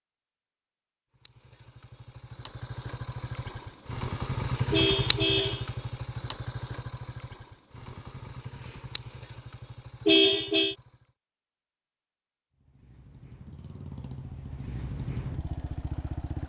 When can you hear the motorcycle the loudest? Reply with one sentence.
The volume of the motorcycle peaks at 5 seconds.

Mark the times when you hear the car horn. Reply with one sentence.
You can hear the car horn from 4.7 to 5.7 s and from 10.1 to 10.8 s.